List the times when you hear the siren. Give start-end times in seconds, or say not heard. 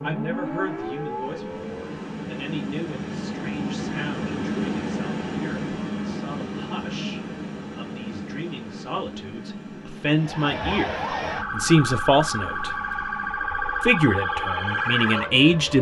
0.0-1.9, 10.1-15.7.